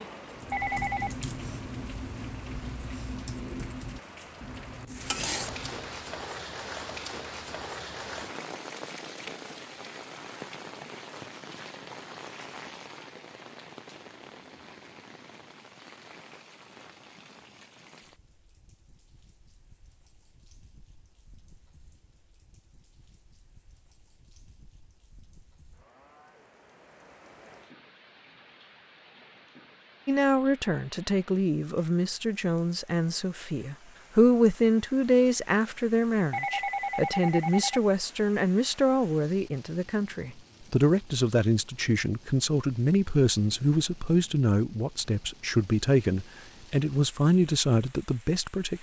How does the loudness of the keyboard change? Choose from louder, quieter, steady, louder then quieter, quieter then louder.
quieter.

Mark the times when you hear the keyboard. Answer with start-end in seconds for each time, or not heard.
0.3-5.9.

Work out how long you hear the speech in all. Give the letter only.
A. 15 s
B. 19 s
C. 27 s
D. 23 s
B.